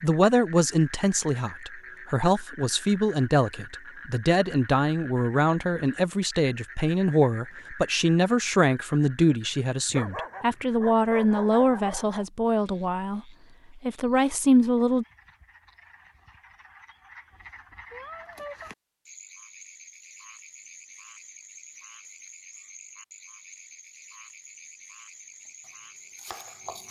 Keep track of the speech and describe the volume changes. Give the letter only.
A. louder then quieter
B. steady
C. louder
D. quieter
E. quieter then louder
B.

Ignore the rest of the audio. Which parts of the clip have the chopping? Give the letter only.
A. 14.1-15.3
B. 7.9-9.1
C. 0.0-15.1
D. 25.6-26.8
D.